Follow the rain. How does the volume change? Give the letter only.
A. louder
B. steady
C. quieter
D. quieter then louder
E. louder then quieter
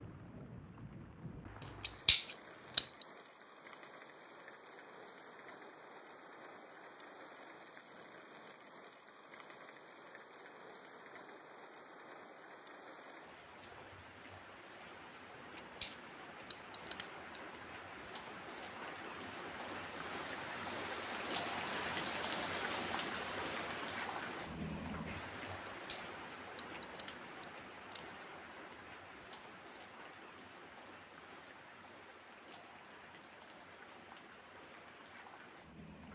E.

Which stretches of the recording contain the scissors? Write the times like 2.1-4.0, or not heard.
1.6-3.0, 15.6-17.4, 25.9-28.1.